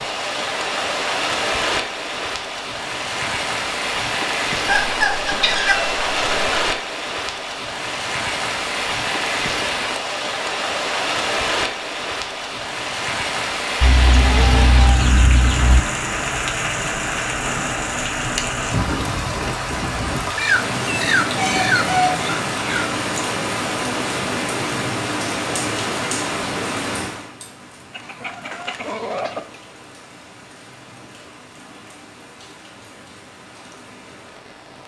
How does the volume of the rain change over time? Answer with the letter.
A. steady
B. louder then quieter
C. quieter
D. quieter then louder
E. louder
C.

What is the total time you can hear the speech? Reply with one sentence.
You can't hear the speech here.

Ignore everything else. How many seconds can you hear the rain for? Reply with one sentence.
The rain can be heard for 35 seconds in total.